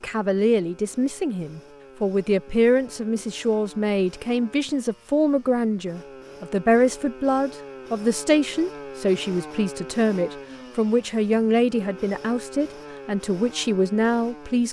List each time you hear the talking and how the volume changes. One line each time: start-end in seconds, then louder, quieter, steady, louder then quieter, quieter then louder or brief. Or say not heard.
0.0-14.6 steady.